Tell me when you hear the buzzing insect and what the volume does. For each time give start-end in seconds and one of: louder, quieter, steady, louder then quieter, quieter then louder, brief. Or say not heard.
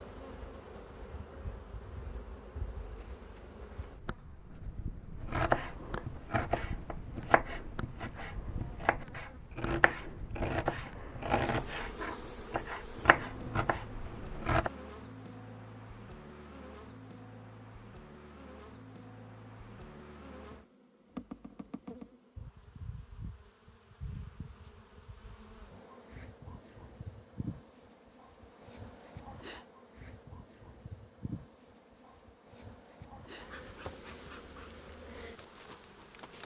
0.0-36.4 steady.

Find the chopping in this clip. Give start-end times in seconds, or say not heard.
5.2-14.7.